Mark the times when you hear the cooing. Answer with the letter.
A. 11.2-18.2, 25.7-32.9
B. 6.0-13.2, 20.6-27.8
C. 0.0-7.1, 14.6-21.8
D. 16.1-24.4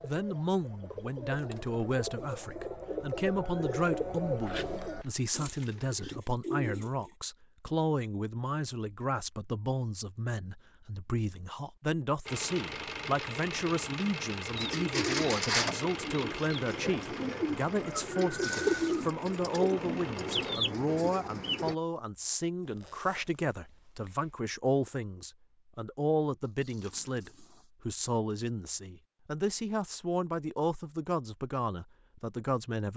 C.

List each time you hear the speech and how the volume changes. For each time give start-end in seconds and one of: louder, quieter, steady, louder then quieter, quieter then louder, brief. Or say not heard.
0.0-32.9 steady.